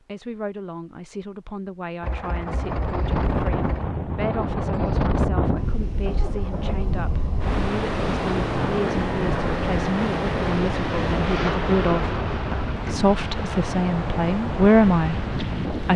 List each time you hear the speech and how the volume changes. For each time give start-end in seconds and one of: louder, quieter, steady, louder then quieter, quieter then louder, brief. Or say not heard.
0.1-15.9 louder.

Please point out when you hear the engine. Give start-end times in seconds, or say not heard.
2.0-12.8.